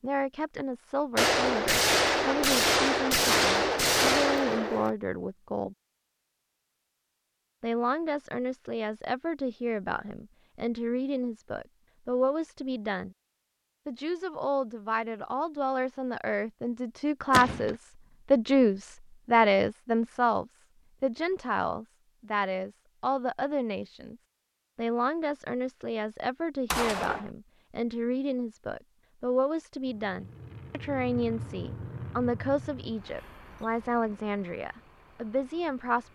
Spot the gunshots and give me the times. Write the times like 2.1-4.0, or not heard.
1.1-4.9, 17.3-17.8, 26.7-27.2.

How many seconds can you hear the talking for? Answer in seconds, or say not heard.
33 s.